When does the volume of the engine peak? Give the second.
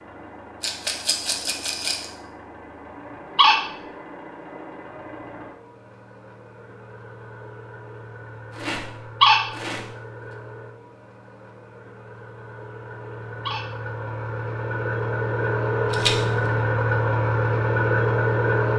18 s.